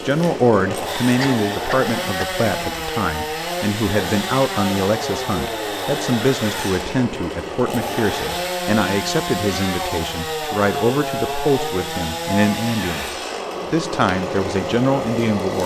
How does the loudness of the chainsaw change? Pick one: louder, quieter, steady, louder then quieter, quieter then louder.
steady.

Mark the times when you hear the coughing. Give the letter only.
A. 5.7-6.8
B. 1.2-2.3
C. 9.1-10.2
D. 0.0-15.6
B.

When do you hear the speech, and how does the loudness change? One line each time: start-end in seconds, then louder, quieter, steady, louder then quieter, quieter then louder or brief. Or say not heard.
0.0-15.6 steady.